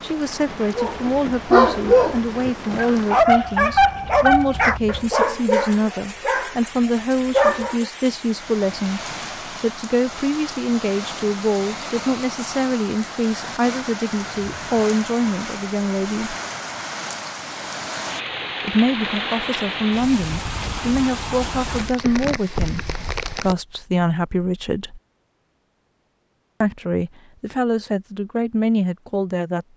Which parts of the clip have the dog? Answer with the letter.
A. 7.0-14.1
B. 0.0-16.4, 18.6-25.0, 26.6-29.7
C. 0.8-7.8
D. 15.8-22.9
C.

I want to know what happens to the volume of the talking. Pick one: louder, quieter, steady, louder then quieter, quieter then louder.
steady.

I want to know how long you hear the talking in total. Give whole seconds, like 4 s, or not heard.
26 s.